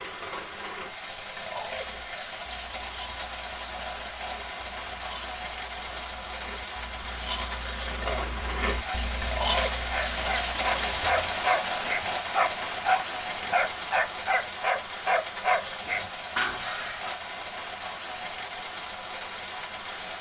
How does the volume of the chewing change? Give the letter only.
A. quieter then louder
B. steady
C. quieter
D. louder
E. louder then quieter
D.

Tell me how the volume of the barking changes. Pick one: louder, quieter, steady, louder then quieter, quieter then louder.
steady.